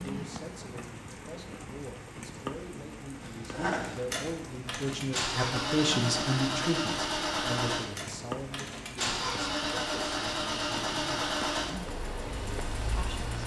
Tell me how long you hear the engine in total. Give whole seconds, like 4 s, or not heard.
10 s.